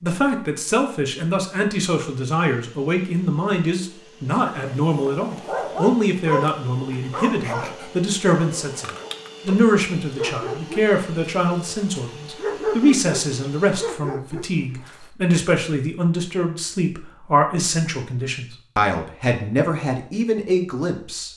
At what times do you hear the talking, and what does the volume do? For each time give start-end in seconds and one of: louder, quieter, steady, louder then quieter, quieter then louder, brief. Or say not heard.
0.0-21.3 steady.